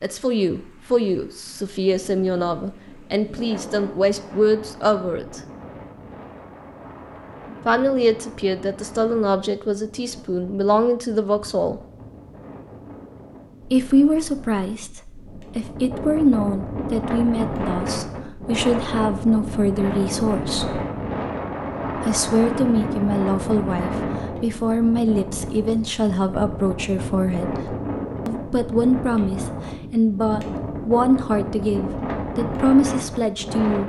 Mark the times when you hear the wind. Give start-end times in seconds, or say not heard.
0.0-33.8.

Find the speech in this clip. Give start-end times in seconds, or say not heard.
0.0-5.4, 7.7-11.8, 13.7-20.8, 21.9-33.8.